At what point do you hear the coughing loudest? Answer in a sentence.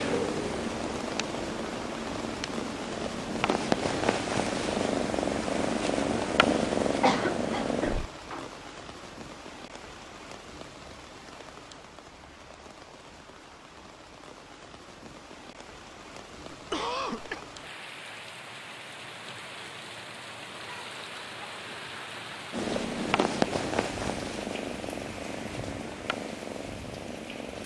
The volume of the coughing peaks at 7 seconds.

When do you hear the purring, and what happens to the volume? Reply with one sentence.
You can hear the purring from 0.0 to 8.1 s, getting louder; and from 22.5 to 27.6 s, getting quieter.